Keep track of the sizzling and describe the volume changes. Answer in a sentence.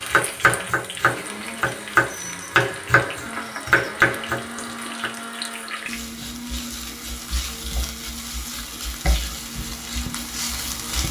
The volume of the sizzling goes up.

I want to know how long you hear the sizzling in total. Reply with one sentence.
You can hear the sizzling for 11 seconds altogether.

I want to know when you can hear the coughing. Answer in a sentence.
You can't hear the coughing here.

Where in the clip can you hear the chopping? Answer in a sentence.
You can hear the chopping from 0.0 to 5.1 s.